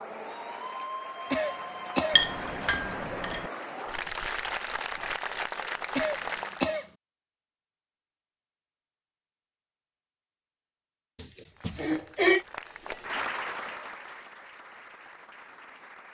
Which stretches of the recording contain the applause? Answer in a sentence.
You can hear the applause from 0.0 to 6.7 s and from 11.5 to 16.0 s.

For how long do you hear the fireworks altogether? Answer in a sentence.
You can't hear the fireworks here.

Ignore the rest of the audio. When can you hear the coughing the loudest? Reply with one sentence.
The volume of the coughing peaks at 12 seconds.